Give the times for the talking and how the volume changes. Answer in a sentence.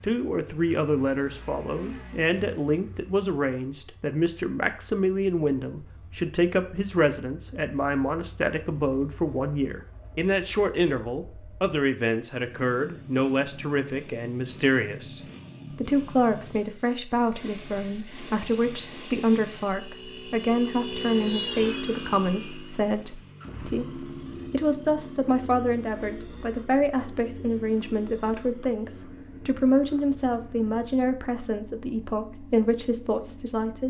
The talking can be heard from 0.0 to 33.8 s, at a steady volume.